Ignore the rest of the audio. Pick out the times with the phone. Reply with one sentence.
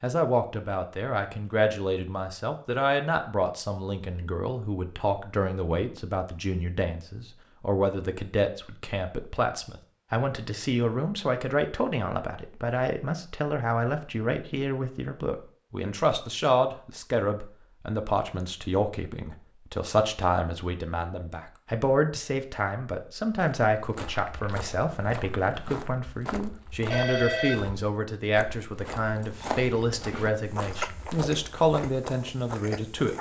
The phone can be heard from 26.9 to 27.6 s.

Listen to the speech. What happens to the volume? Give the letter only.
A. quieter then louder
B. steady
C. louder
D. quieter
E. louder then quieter
B.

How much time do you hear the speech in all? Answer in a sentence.
You can hear the speech for 33 seconds altogether.